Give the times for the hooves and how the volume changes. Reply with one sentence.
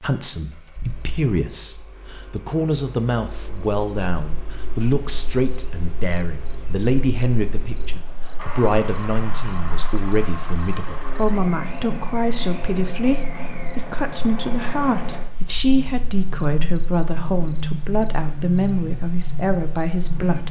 The hooves can't be heard in this clip.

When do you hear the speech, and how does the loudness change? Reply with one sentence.
The speech can be heard from 0.0 to 20.4 s, at a steady volume.